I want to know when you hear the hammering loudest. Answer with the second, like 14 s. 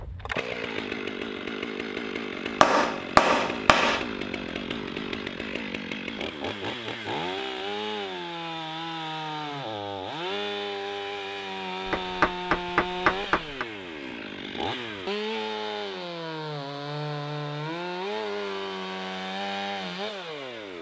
3 s.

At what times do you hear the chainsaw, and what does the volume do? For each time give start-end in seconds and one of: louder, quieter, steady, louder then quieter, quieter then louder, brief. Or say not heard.
0.0-20.7 steady.